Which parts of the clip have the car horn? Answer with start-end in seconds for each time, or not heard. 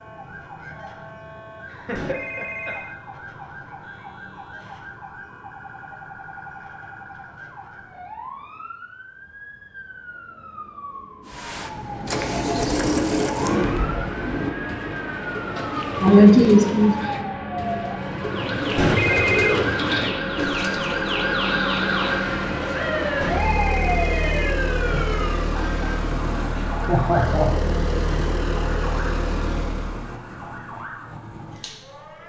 not heard.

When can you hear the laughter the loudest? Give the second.
16 s.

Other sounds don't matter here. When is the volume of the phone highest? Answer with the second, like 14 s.
19 s.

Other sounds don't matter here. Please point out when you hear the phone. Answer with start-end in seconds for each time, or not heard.
1.9-3.0, 18.8-19.6, 23.2-25.1.